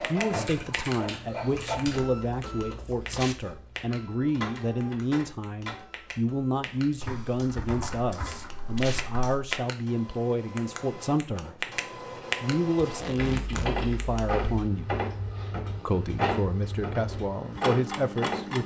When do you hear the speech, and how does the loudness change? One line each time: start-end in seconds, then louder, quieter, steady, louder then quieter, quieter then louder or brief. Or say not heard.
0.0-11.7 steady
12.4-14.9 brief
15.8-18.6 brief.